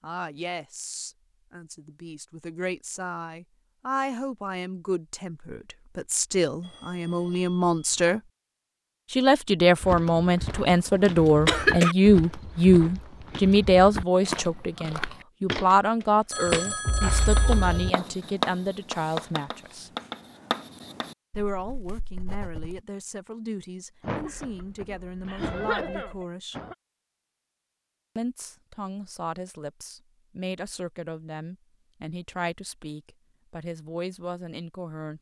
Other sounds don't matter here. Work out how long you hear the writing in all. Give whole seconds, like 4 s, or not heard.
6 s.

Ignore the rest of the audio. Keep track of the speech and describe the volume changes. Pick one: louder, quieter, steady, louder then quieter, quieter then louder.
louder then quieter.